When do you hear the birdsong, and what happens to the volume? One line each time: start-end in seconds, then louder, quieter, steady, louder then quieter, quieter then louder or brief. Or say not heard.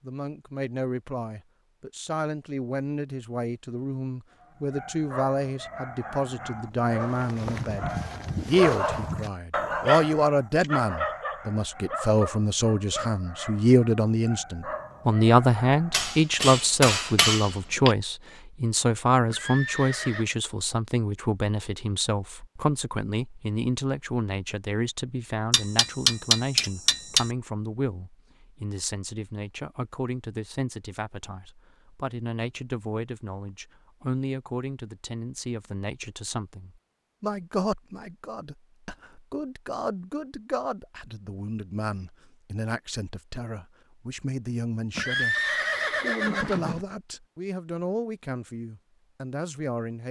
not heard.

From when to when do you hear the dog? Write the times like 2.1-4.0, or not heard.
4.4-16.2.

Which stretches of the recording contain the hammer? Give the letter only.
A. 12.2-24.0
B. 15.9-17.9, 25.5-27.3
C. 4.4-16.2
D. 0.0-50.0
B.